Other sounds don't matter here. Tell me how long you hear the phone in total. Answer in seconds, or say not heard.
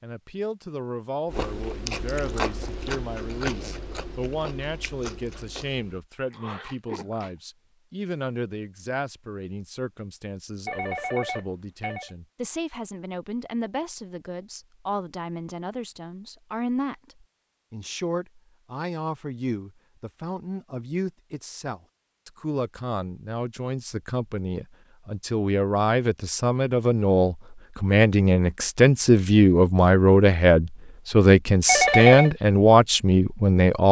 2 s.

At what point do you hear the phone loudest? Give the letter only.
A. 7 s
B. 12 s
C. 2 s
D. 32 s
D.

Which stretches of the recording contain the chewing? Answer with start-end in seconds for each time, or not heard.
1.3-7.3.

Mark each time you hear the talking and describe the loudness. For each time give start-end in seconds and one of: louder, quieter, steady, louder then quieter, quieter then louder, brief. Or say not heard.
0.0-33.8 louder.